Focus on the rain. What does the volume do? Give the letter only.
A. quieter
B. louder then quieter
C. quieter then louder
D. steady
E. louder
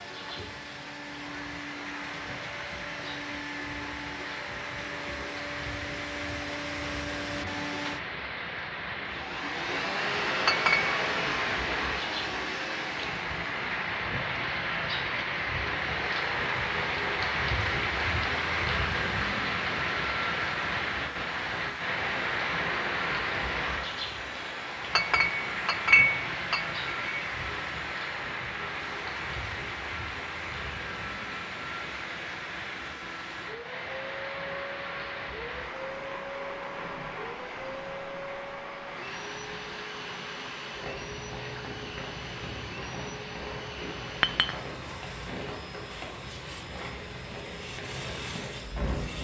B.